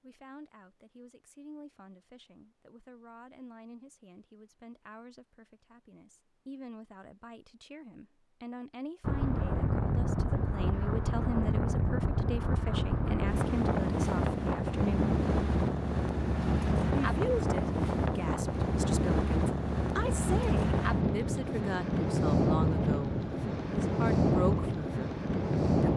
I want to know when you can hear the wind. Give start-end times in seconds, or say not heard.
9.0-25.9.